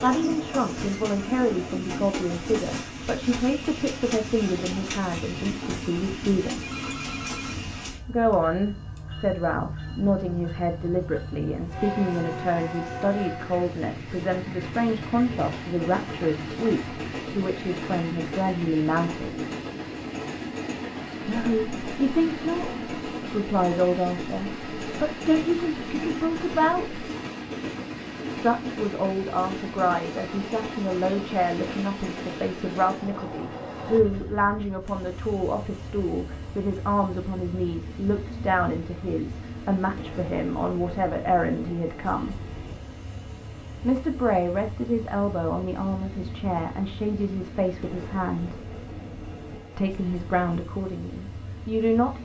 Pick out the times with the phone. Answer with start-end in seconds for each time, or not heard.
6.5-7.7.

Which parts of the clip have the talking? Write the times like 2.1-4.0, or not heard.
0.0-6.6, 8.1-19.4, 21.2-27.1, 28.4-42.4, 43.8-48.6, 49.8-52.2.